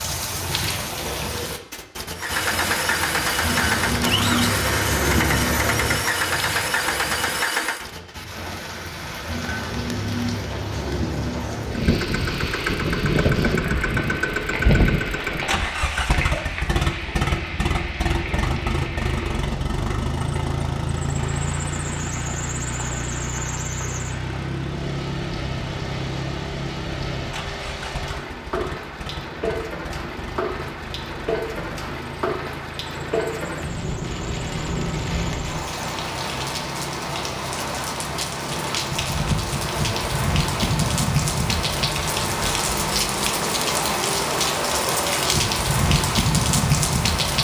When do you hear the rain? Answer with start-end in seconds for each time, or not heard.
0.0-47.4.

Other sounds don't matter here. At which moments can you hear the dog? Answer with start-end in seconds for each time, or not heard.
not heard.